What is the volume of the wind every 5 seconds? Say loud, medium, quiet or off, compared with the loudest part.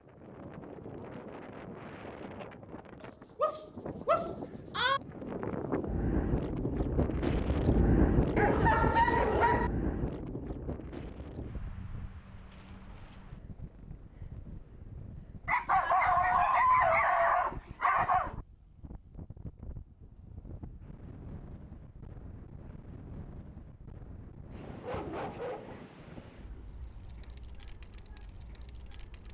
quiet, loud, quiet, quiet, quiet, quiet.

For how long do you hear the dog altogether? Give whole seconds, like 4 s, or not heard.
8 s.